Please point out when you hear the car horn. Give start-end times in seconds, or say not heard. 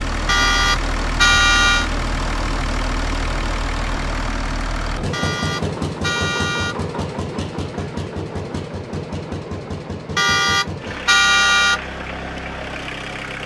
0.2-1.9, 5.1-6.8, 10.2-11.8.